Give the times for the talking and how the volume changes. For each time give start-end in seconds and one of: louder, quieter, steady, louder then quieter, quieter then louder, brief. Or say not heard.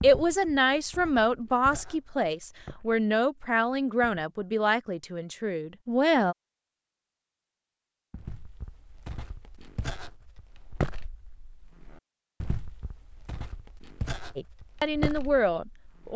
0.0-6.3 quieter
14.3-16.1 brief.